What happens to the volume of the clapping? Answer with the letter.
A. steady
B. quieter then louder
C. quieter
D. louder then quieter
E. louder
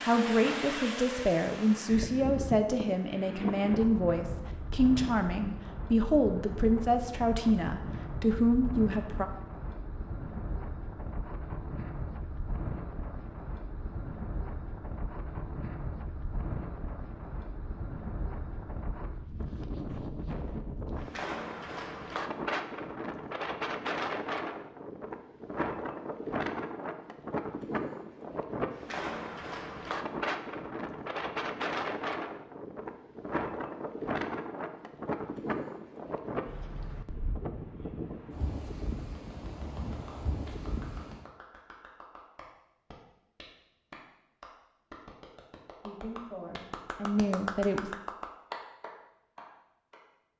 E.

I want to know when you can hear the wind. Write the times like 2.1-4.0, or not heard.
0.0-41.3.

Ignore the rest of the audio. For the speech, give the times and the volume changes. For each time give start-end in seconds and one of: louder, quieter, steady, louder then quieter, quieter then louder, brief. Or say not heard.
0.0-9.2 steady
45.8-47.9 brief.